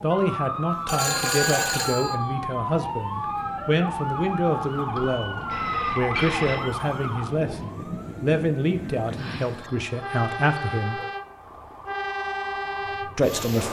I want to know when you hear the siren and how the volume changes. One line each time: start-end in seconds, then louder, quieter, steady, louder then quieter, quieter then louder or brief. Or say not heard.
0.0-13.3 quieter.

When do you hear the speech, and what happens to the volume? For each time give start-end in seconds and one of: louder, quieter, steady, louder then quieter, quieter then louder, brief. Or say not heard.
0.0-11.0 steady
13.2-13.6 brief.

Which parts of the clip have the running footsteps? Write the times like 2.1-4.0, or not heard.
not heard.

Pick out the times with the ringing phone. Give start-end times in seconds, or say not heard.
0.8-2.1, 5.0-6.7, 9.2-11.1.